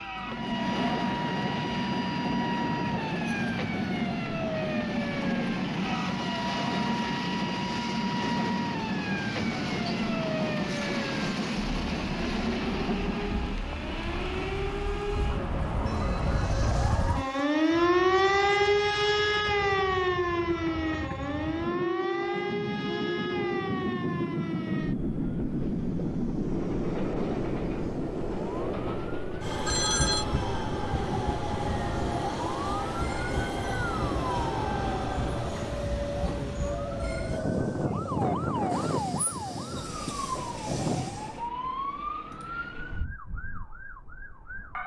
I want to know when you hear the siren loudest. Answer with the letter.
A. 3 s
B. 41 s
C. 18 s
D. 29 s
C.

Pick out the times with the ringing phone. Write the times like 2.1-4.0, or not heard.
29.6-30.2.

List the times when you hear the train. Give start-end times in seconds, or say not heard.
0.0-41.5.